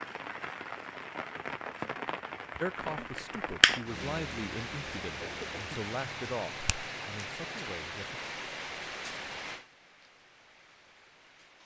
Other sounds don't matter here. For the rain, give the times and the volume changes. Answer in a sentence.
You can hear the rain from 0.0 to 11.6 s, getting quieter.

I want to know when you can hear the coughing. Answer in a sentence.
The coughing can be heard from 5.2 to 5.8 s.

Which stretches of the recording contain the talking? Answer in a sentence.
The talking can be heard from 2.6 to 8.2 s.